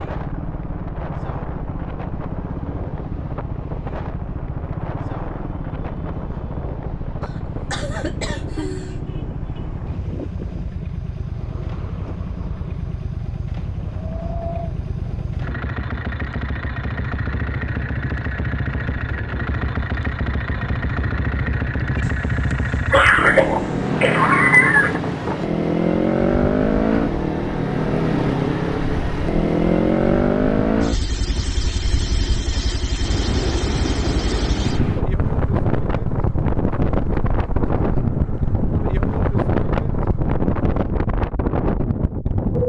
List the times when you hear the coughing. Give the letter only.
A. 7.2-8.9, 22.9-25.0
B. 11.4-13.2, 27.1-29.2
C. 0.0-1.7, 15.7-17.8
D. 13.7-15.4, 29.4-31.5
A.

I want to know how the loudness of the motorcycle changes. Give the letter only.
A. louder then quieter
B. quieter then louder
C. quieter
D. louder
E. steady
A.